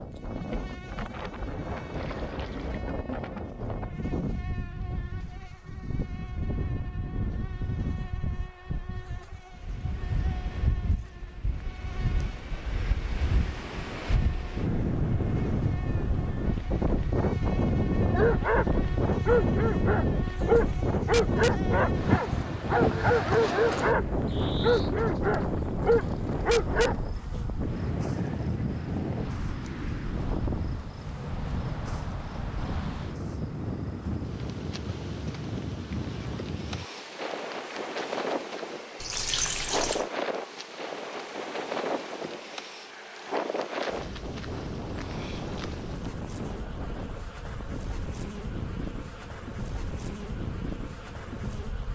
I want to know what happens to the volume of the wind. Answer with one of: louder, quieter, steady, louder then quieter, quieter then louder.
louder then quieter.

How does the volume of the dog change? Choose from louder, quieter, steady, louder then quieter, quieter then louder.
steady.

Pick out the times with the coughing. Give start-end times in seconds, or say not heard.
not heard.